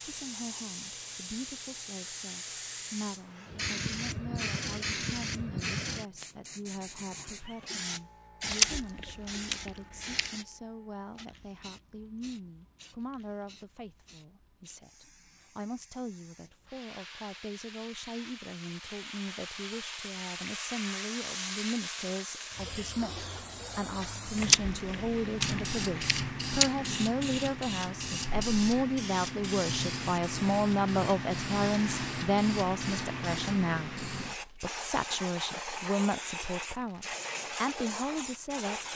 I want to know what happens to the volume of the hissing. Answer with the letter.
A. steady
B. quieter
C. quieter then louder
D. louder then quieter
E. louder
C.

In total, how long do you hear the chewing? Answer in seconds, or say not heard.
4 s.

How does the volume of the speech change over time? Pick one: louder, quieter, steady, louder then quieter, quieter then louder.
louder.